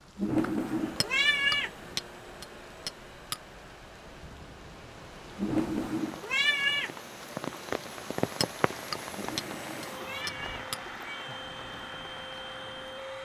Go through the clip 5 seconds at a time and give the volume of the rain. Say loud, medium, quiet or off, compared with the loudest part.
quiet, loud, medium.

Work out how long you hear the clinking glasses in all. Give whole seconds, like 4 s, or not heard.
5 s.